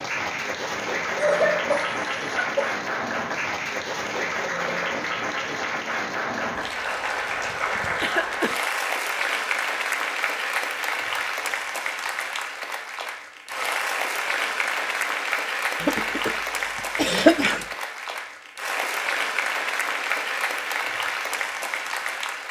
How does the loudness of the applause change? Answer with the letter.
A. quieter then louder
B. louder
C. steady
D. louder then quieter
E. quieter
C.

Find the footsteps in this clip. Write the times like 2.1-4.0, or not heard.
not heard.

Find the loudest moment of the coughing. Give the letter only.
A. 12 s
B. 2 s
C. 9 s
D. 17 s
D.